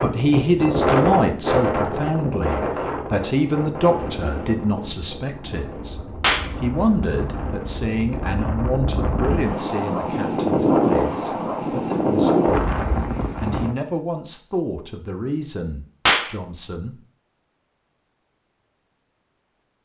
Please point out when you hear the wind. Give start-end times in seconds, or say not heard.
0.0-13.8.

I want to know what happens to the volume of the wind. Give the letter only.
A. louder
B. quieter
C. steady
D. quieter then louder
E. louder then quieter
D.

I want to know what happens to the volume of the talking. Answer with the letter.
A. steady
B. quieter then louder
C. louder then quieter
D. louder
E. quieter
E.